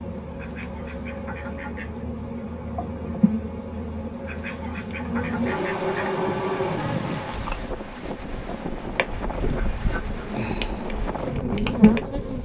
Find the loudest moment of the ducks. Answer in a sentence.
The loudest moment of the ducks is at 5 seconds.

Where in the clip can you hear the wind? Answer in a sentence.
You can hear the wind from 6.0 to 12.4 s.